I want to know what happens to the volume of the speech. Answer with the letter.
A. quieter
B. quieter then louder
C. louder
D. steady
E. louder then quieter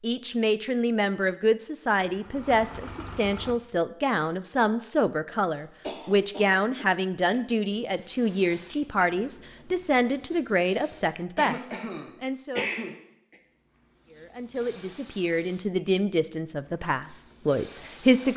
D.